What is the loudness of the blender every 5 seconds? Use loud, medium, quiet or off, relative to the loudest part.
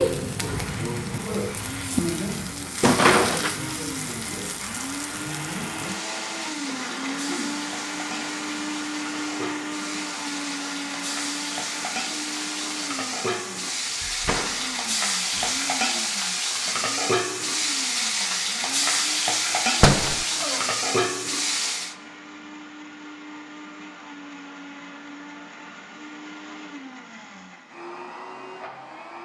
medium, loud, loud, medium, medium, medium.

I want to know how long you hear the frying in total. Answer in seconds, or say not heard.
22 s.